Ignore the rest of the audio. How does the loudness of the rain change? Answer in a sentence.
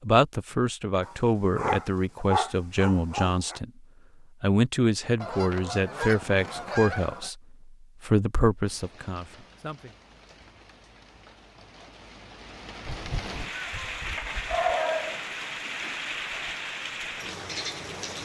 The loudness of the rain goes up.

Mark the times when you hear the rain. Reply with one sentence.
You can hear the rain from 8.6 to 18.1 s.